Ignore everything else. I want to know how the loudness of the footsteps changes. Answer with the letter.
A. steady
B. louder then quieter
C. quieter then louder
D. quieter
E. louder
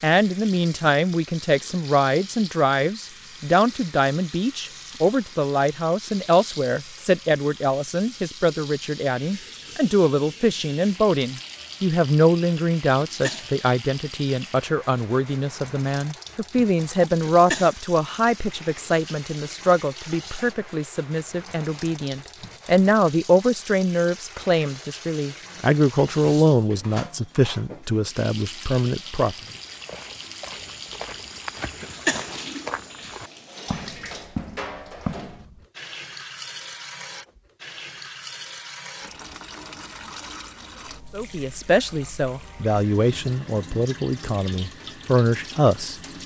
E.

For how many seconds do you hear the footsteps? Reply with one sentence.
You can hear the footsteps for 6 seconds altogether.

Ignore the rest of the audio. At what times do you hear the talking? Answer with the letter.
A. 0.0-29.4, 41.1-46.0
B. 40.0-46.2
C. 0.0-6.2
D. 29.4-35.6
A.